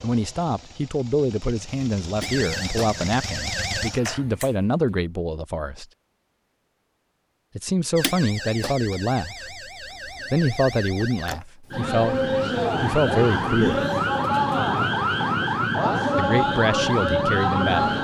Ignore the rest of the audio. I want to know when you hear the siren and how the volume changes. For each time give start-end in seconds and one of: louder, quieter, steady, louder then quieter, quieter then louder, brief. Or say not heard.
2.2-3.9 brief
8.0-17.9 louder.